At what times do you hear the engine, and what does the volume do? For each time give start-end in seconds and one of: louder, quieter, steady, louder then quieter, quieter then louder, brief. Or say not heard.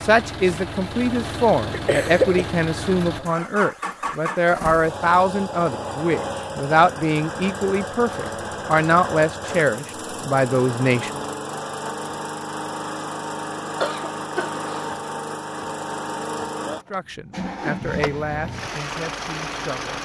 0.0-20.0 steady.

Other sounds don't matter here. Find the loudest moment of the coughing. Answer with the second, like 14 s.
2 s.